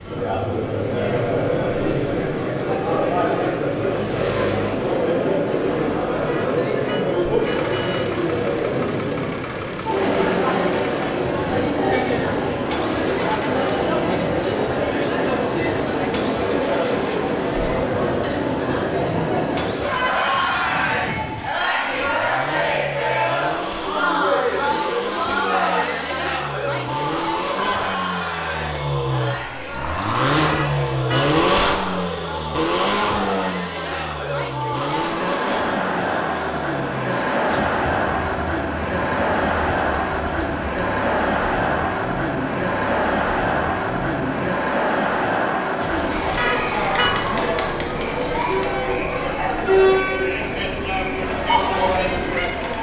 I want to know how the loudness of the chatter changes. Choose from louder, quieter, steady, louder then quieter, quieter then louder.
steady.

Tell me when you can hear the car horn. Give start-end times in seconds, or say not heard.
6.2-8.1, 30.4-31.2, 46.4-47.1.